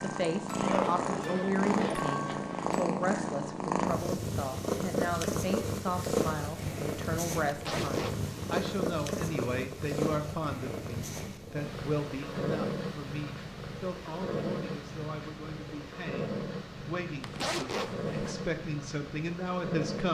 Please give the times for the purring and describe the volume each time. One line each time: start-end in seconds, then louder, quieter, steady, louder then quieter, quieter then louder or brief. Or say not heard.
0.0-20.0 quieter.